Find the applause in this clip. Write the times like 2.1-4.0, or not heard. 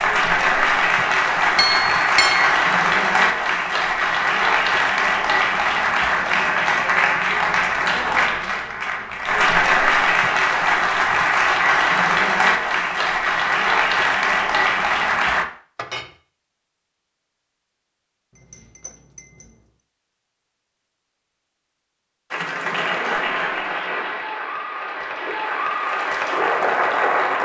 0.0-15.4, 22.3-27.3.